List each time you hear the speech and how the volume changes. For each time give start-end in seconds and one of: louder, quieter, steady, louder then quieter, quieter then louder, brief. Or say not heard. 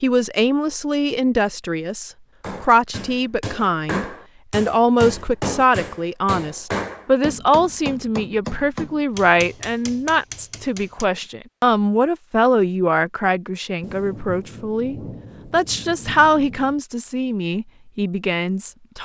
0.0-19.0 steady.